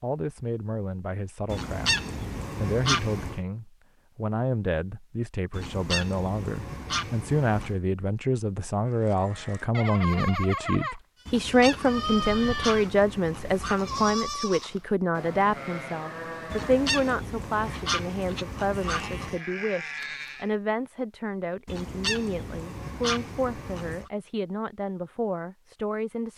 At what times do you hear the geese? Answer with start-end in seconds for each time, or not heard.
1.4-3.4, 5.5-7.8, 11.2-14.2, 16.5-19.4, 21.6-24.1.